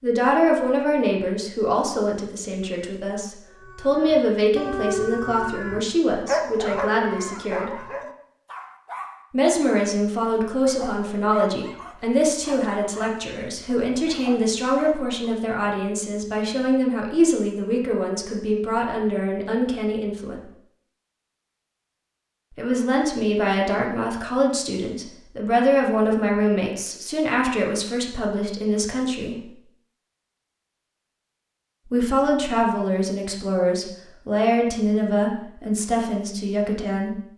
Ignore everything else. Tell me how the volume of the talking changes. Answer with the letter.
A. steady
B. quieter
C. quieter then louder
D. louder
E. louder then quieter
A.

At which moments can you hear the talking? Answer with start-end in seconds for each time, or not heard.
0.0-7.8, 9.3-20.4, 22.6-29.5, 31.9-37.2.